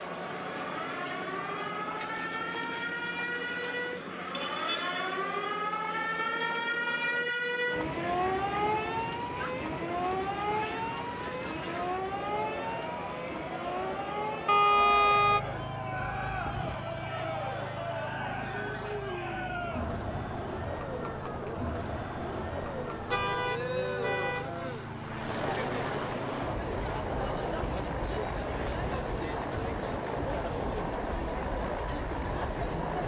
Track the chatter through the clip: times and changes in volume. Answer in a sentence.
The chatter can be heard from 0.0 to 33.0 s, getting louder.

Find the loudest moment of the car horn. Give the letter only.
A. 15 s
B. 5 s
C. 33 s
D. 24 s
A.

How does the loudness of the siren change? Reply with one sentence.
The loudness of the siren goes down.